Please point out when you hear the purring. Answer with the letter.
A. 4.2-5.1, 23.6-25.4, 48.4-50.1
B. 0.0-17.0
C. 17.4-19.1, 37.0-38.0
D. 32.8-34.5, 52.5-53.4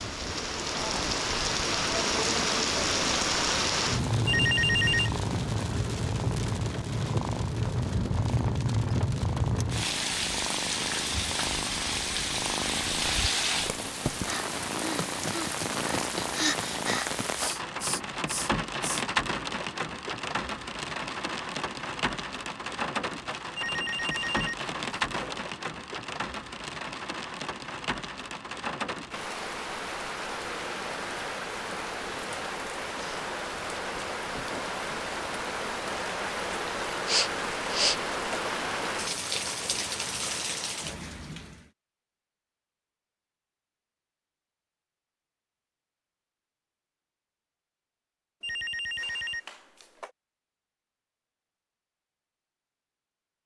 B.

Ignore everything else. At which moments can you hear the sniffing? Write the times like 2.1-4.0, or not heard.
17.4-19.1, 37.0-38.0.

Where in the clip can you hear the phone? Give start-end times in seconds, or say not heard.
4.2-5.1, 23.6-25.4, 48.4-50.1.